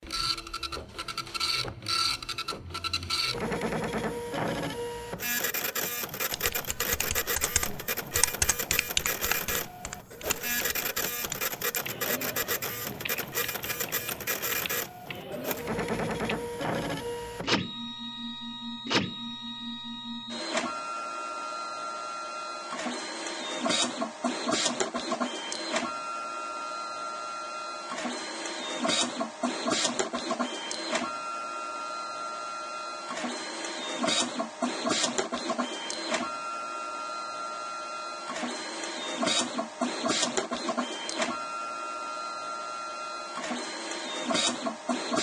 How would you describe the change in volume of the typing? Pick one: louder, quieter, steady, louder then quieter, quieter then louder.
quieter.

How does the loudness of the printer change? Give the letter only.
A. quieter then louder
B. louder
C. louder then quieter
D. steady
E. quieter
D.